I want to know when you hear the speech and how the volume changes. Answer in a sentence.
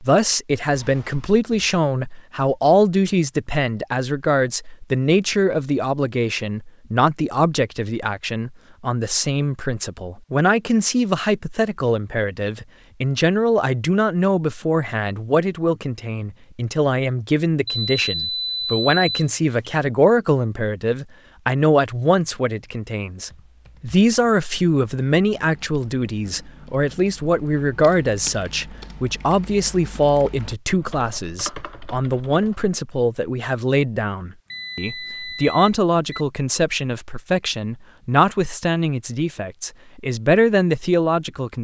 The speech can be heard from 0.0 to 41.5 s, at a steady volume.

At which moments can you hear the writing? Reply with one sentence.
You can't hear the writing here.